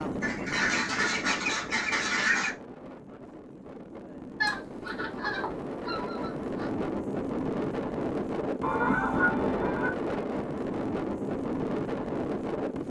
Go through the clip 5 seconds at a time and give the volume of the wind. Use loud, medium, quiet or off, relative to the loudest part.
medium, loud, loud.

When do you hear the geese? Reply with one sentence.
You can hear the geese from 0.2 to 2.5 s, from 4.4 to 6.7 s and from 8.6 to 9.9 s.